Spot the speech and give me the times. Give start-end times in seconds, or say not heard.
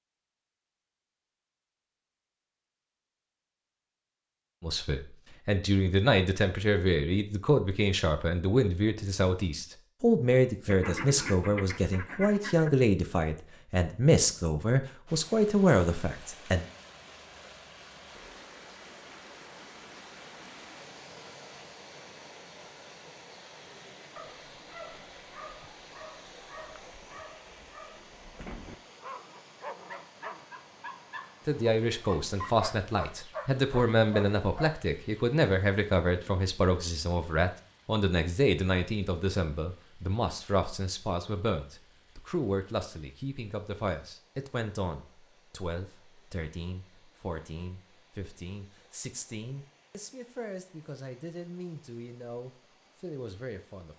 4.6-16.6, 31.4-53.9.